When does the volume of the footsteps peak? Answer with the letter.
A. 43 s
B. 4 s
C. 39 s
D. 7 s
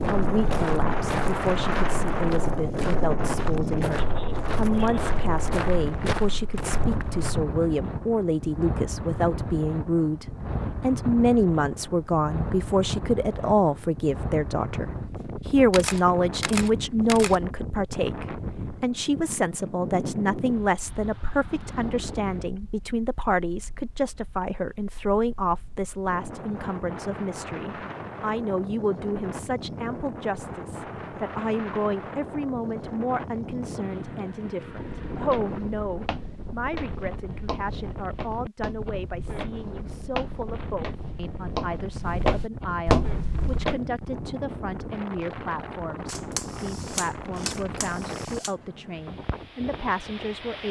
A.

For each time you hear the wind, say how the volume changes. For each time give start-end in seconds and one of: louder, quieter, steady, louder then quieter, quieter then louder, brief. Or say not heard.
0.0-50.6 quieter.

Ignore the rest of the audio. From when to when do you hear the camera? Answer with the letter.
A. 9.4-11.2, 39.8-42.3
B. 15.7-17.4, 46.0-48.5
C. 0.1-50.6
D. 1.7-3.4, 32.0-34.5
B.